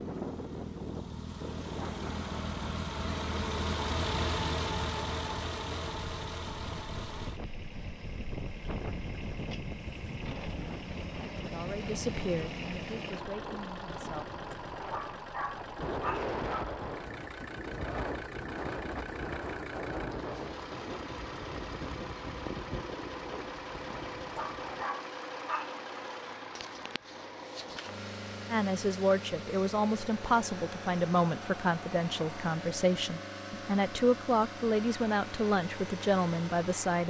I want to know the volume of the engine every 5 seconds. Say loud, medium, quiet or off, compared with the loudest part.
loud, medium, medium, medium, medium, medium, medium, medium.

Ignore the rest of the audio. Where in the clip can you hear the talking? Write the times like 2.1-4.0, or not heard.
11.3-14.2, 28.5-37.0.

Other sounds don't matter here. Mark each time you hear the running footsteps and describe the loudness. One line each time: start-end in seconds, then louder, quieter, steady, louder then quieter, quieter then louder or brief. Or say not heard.
not heard.